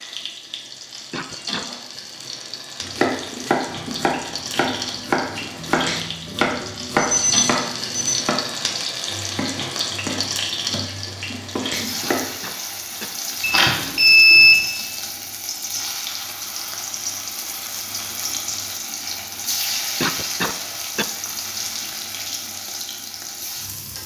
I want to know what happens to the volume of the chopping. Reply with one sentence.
The loudness of the chopping goes down.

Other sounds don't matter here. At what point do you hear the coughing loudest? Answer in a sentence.
The volume of the coughing peaks at 20 seconds.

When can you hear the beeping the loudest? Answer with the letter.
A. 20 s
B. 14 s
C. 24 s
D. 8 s
B.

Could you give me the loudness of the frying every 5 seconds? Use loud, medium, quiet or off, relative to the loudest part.
medium, loud, loud, loud, loud.